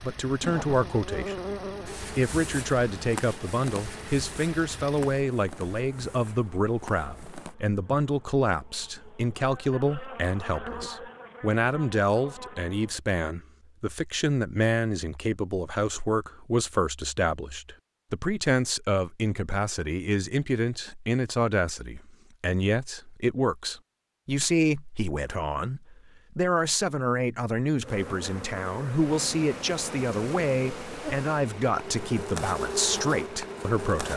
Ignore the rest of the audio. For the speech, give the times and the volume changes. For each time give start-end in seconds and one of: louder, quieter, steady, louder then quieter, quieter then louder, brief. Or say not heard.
0.0-34.1 steady.